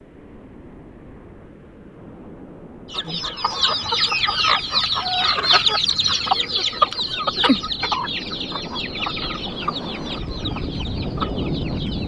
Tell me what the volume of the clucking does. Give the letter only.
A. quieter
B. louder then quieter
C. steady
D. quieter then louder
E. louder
A.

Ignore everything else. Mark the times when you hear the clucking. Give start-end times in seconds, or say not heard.
2.9-12.0.